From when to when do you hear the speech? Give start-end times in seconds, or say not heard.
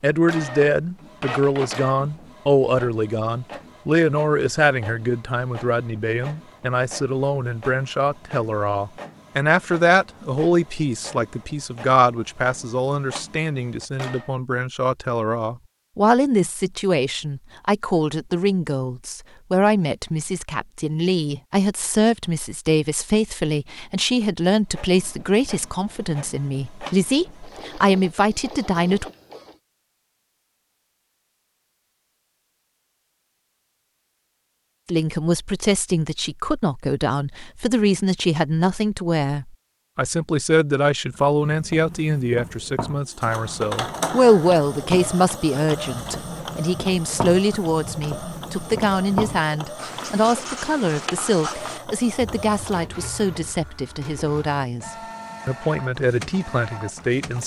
0.0-29.1, 34.9-57.4.